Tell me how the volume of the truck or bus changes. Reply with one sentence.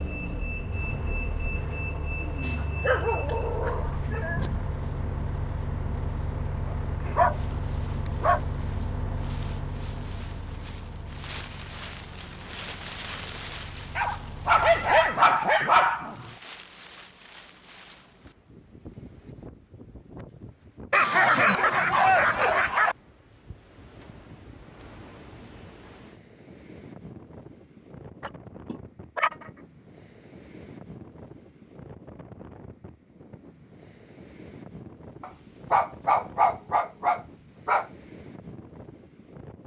The loudness of the truck or bus goes down.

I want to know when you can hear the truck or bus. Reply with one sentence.
The truck or bus can be heard from 0.0 to 15.2 s.